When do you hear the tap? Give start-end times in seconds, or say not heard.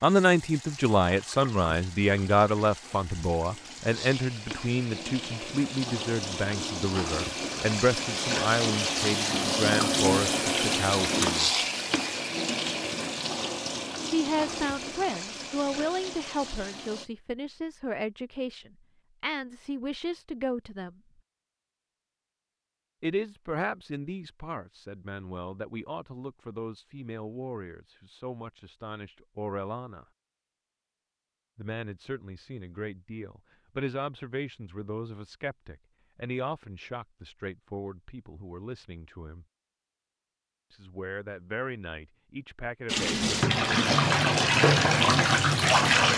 0.0-17.1, 42.9-46.1.